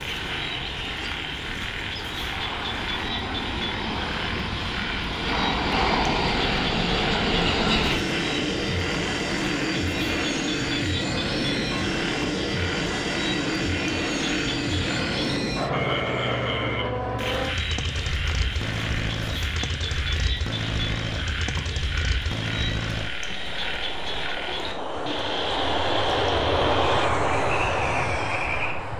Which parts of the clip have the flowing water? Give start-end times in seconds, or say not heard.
not heard.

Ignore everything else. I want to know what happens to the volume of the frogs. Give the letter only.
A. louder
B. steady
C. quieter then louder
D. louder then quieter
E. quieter
B.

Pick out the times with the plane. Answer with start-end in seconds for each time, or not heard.
0.0-28.9.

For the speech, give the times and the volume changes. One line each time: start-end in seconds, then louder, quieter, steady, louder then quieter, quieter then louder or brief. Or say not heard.
not heard.